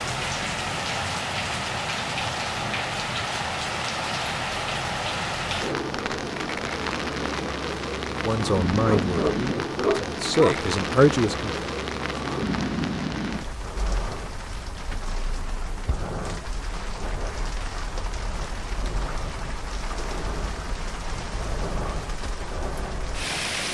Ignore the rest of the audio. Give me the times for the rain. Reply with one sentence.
The rain can be heard from 0.0 to 23.6 s.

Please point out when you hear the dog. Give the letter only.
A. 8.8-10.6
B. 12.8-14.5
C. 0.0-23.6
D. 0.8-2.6
A.